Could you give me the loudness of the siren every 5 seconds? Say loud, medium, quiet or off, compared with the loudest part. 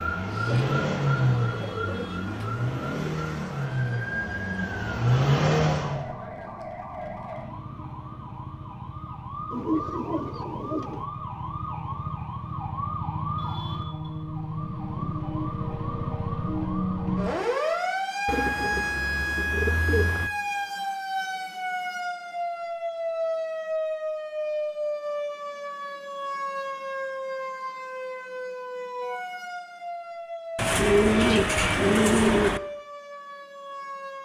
medium, medium, medium, loud, loud, medium, medium.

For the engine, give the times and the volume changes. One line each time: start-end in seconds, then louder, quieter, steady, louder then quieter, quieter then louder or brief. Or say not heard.
0.0-6.0 quieter then louder.